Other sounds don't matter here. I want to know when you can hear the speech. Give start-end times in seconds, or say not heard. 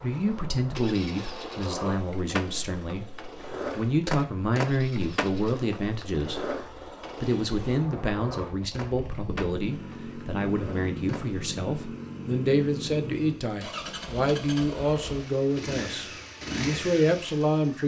0.0-6.5, 7.2-17.8.